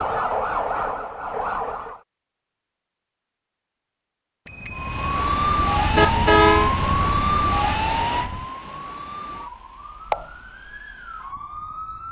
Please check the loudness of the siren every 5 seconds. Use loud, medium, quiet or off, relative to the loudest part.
loud, loud, medium.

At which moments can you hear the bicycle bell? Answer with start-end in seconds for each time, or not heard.
4.5-5.2.